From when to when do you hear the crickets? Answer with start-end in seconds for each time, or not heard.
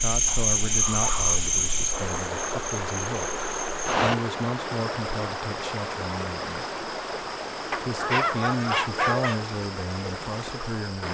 0.0-11.0.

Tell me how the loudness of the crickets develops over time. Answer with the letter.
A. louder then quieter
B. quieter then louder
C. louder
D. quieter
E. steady
D.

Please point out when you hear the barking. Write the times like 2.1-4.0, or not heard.
0.2-1.4, 7.7-9.4.